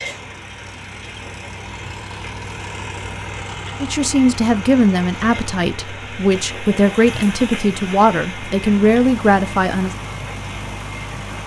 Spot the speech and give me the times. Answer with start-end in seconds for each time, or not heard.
3.8-9.9.